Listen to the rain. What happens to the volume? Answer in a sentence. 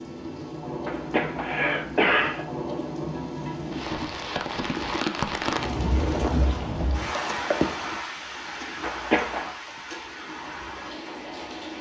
The loudness of the rain goes up, then down.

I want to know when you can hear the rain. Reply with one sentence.
The rain can be heard from 0.0 to 11.7 s.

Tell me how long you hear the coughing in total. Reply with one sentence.
You can hear the coughing for 2 seconds altogether.